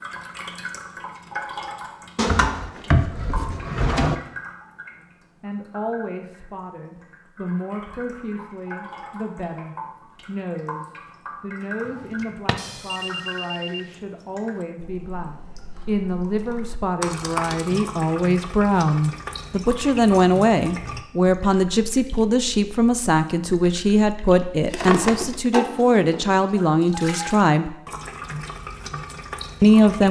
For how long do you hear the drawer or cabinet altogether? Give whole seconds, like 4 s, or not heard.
3 s.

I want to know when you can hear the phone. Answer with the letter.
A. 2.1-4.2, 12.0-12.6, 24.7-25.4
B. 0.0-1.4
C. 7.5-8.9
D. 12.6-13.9
D.